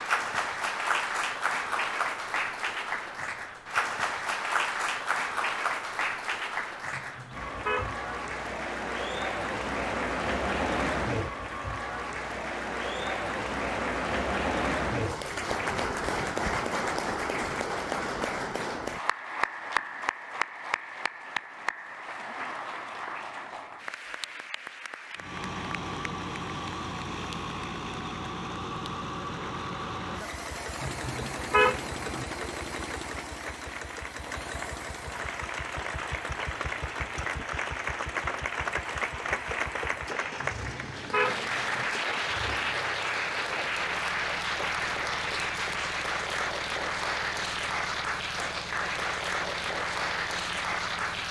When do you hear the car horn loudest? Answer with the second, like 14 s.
32 s.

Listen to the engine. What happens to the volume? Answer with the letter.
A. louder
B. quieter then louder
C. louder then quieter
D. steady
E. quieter
E.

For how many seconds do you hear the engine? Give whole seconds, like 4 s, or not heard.
26 s.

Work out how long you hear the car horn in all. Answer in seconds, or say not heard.
4 s.